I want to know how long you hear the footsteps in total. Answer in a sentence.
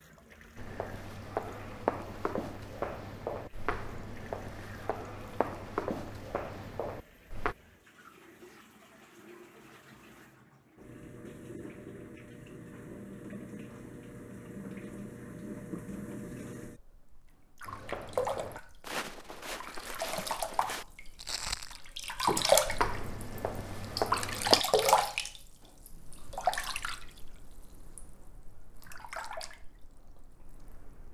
The footsteps can be heard for 14 seconds in total.